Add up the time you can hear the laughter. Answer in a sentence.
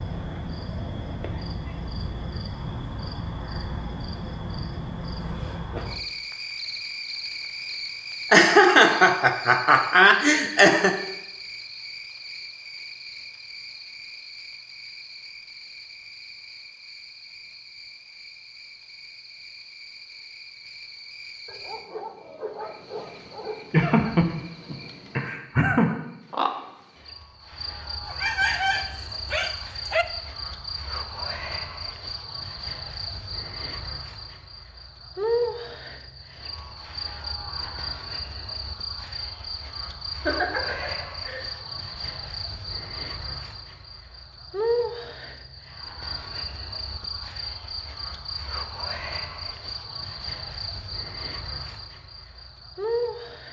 You can hear the laughter for 6 seconds altogether.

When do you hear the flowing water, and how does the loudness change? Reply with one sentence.
The flowing water can't be heard in this clip.